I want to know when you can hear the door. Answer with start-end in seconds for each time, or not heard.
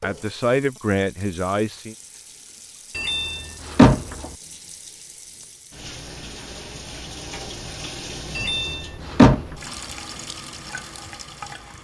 3.0-4.2, 8.3-9.4.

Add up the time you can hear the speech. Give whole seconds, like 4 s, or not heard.
2 s.